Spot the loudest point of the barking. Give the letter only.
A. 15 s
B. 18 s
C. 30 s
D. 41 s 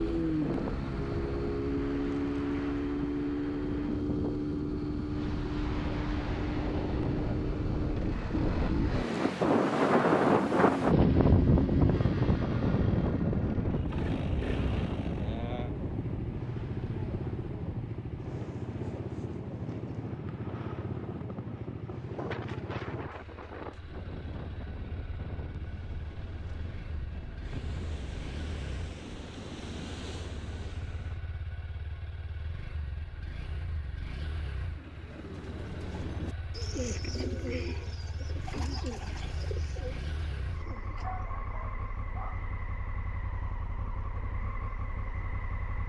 D.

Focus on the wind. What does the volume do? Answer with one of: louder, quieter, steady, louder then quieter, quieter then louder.
louder then quieter.